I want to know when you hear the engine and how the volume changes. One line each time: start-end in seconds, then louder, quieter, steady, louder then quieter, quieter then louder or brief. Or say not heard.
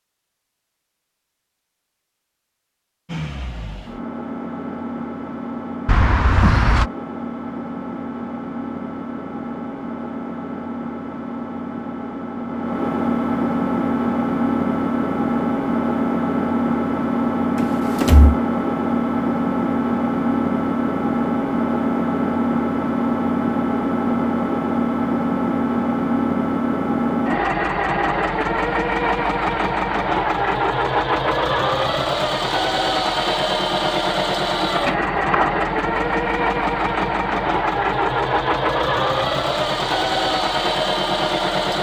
3.0-41.7 louder.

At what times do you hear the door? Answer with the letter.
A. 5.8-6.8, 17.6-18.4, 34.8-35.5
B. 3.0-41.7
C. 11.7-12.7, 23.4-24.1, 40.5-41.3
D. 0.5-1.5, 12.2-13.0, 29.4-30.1
A.